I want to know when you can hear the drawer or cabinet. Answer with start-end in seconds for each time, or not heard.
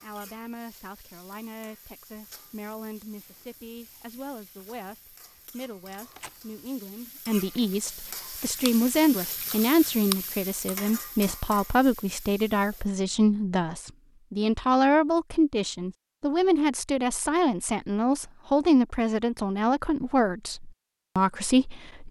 not heard.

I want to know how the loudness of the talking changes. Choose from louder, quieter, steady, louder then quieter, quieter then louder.
louder.